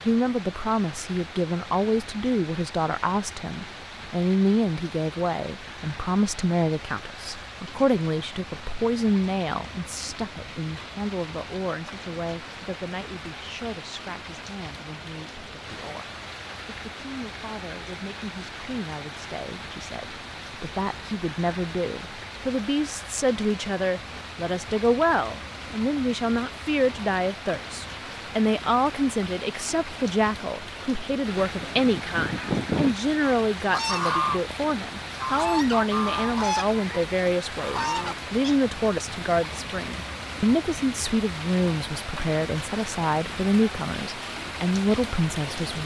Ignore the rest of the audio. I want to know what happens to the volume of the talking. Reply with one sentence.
The volume of the talking goes down, then up.